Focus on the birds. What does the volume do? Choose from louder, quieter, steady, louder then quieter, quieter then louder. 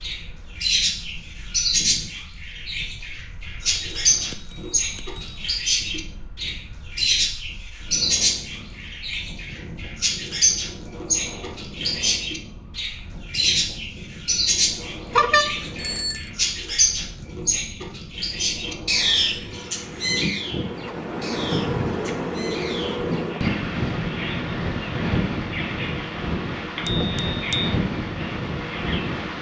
quieter.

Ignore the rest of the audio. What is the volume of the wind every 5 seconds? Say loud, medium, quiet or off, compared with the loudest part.
quiet, quiet, quiet, quiet, loud, loud.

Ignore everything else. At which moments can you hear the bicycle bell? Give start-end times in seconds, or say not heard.
3.6-5.5, 15.1-16.3, 26.9-27.8.